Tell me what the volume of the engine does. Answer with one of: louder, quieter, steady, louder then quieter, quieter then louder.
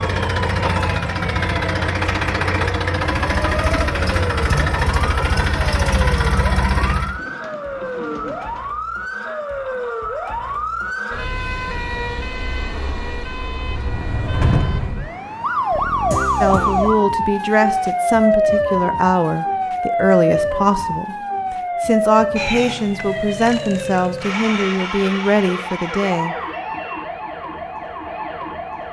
steady.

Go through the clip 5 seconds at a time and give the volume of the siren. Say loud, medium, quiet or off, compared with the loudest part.
medium, medium, medium, loud, loud, medium.